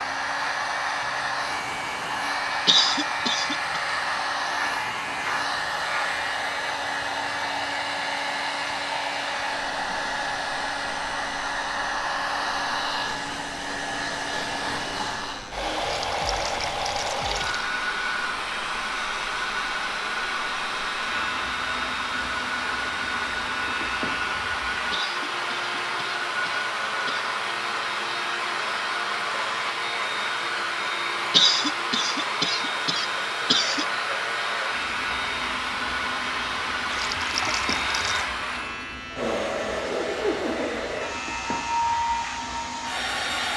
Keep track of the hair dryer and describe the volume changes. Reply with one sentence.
The volume of the hair dryer stays about the same.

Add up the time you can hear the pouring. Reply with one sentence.
You can hear the pouring for 3 seconds altogether.